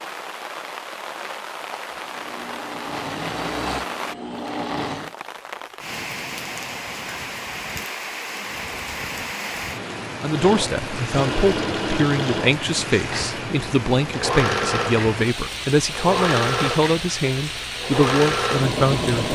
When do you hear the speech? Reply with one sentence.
You can hear the speech from 10.2 to 19.2 s.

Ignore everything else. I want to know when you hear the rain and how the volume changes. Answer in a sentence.
The rain can be heard from 0.0 to 19.2 s, at a steady volume.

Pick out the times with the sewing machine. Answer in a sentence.
The sewing machine can be heard from 1.9 to 5.1 s and from 10.2 to 19.2 s.